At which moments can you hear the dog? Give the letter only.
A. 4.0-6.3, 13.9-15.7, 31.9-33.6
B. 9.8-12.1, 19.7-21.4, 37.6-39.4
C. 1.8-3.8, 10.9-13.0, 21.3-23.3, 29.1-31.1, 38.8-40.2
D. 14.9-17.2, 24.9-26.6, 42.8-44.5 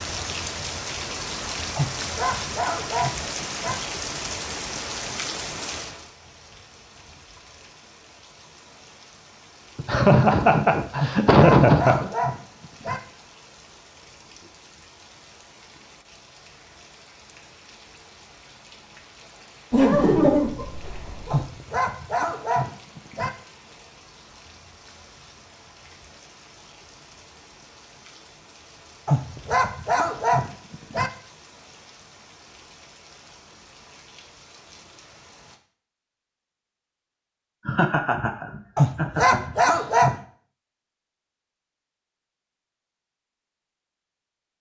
C.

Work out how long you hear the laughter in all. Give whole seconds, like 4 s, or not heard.
6 s.